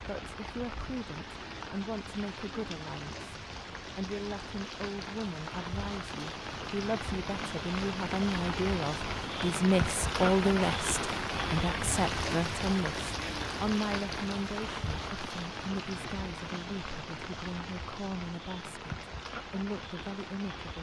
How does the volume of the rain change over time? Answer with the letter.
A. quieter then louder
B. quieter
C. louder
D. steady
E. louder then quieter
E.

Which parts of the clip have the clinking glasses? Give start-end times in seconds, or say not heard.
not heard.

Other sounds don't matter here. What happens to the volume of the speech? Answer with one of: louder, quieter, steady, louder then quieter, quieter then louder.
louder then quieter.